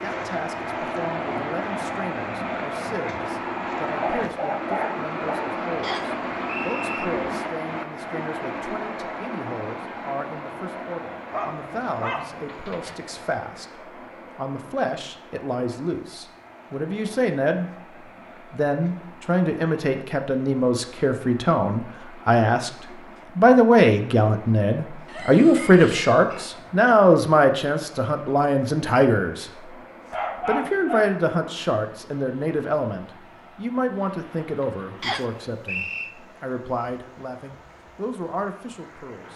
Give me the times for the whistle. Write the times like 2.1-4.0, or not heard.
5.8-7.0, 35.0-36.1.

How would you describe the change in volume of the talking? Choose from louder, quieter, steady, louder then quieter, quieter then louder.
louder then quieter.